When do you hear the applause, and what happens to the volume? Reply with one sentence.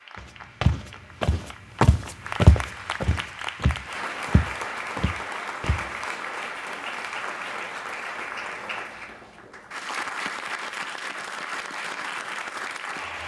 The applause can be heard from 0.0 to 13.2 s, getting louder.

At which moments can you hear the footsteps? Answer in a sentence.
The footsteps can be heard from 0.1 to 6.0 s.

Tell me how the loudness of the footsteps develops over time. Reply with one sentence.
The loudness of the footsteps goes up, then down.